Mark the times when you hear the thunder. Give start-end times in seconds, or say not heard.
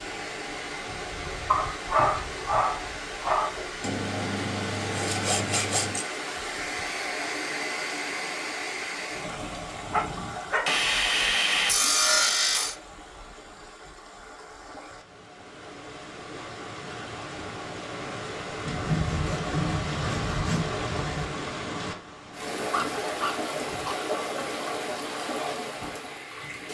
not heard.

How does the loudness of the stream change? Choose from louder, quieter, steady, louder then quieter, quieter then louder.
quieter then louder.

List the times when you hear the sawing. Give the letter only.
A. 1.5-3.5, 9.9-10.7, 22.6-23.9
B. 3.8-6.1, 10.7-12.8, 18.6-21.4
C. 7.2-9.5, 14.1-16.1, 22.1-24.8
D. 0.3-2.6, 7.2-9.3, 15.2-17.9
B.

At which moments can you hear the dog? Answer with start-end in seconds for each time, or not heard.
1.5-3.5, 9.9-10.7, 22.6-23.9.